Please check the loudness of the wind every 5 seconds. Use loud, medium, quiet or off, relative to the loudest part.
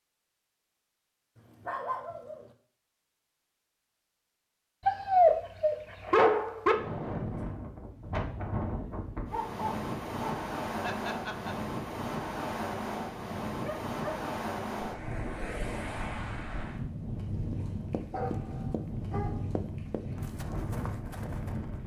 off, loud, loud, loud, loud.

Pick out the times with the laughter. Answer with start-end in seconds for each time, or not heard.
10.8-11.6.